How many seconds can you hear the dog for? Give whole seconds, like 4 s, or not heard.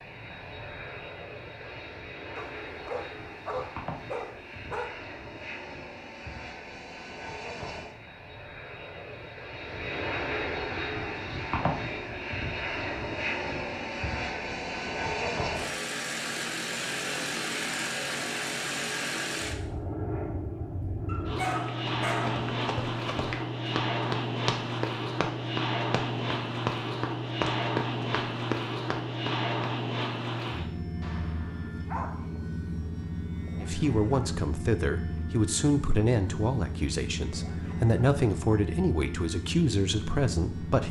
5 s.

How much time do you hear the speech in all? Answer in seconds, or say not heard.
7 s.